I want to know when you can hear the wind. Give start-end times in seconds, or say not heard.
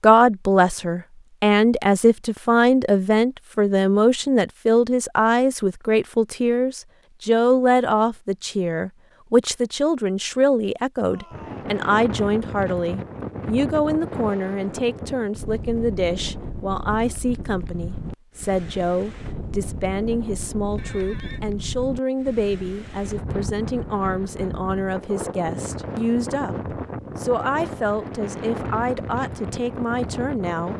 11.3-30.7.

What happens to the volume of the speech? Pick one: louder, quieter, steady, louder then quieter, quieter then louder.
quieter.